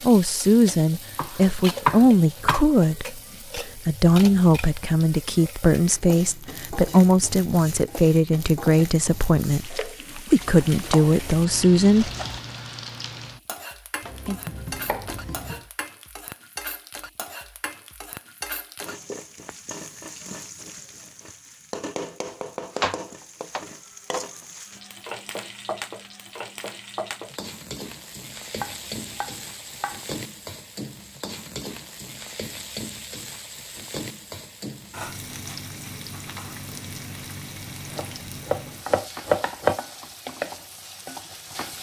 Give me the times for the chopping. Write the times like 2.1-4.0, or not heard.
1.1-2.6, 10.4-12.4, 14.0-15.7, 22.7-24.2, 28.6-30.1, 37.9-39.8.